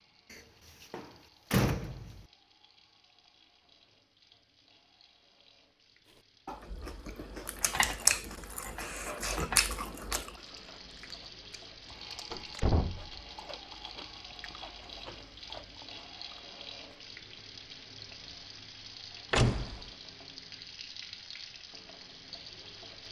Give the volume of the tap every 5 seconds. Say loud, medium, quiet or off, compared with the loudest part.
quiet, quiet, loud, loud, loud.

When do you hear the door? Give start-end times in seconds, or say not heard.
0.3-2.2, 12.3-13.2, 19.3-19.9.